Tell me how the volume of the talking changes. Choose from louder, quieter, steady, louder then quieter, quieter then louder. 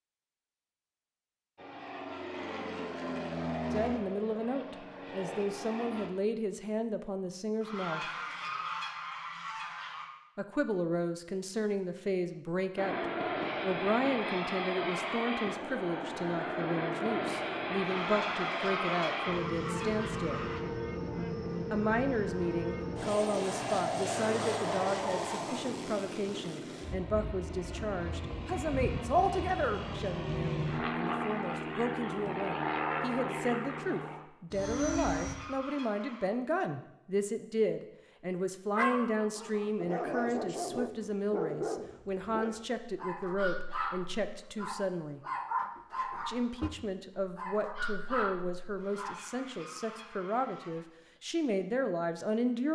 steady.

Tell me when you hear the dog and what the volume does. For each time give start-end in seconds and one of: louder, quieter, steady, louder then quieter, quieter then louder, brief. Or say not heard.
38.8-49.1 steady.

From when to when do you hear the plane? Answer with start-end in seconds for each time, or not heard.
1.6-6.1, 12.8-35.4.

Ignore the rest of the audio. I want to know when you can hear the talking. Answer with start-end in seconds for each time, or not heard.
3.7-8.1, 10.3-20.4, 21.7-45.2, 46.2-52.7.